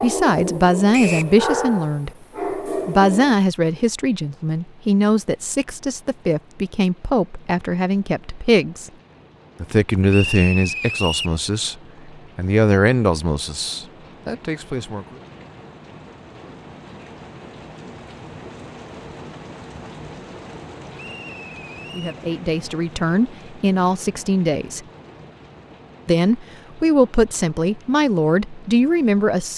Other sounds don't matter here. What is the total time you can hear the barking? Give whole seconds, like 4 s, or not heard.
3 s.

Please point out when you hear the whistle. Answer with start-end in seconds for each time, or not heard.
0.9-1.4, 10.1-11.3, 20.9-22.2.